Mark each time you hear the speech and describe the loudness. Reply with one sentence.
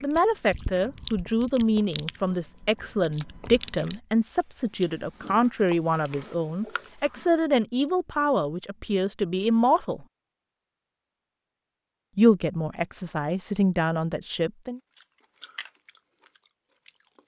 The speech can be heard from 0.0 to 10.1 s, at a steady volume; and briefly from 12.2 to 14.8 s.